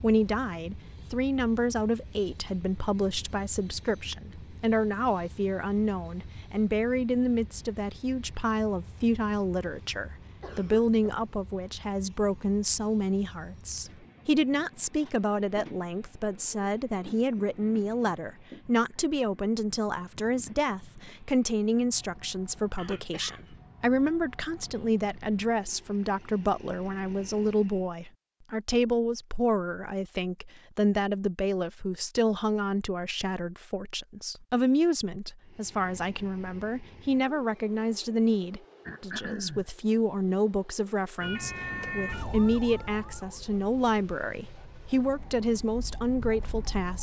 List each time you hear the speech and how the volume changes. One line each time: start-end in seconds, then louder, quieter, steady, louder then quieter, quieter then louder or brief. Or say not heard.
0.0-46.9 steady.